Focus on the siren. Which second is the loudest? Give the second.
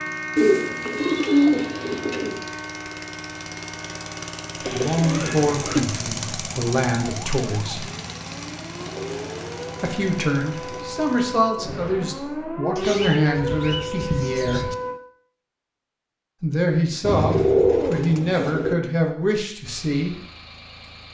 13 s.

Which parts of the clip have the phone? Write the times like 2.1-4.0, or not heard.
not heard.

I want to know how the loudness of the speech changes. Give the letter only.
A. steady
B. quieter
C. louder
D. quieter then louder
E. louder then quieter
A.